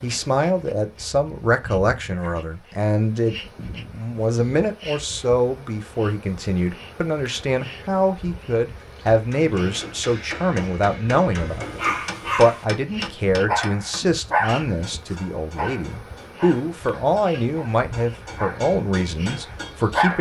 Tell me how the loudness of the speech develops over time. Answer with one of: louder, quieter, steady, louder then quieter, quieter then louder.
steady.